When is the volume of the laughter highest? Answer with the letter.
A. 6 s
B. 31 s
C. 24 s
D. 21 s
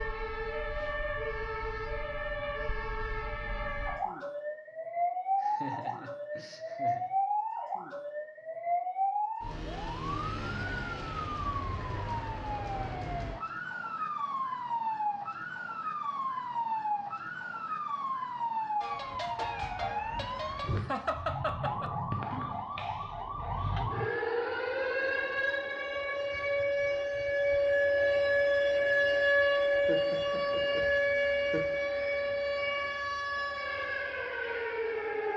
D.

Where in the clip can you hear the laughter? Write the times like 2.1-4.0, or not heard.
5.4-7.1, 20.8-21.9, 29.9-31.8.